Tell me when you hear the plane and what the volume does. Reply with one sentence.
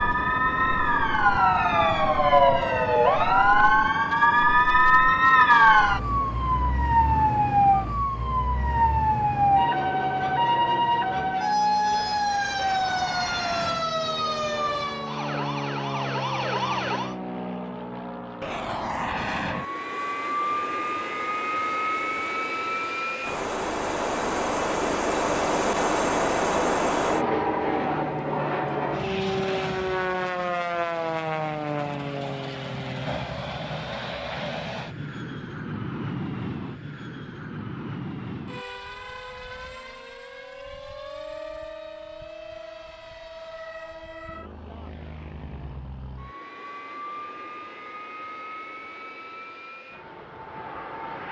The plane can be heard from 0.0 to 51.2 s, getting louder then quieter.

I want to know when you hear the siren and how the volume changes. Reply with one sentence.
You can hear the siren from 0.0 to 17.1 s, getting quieter.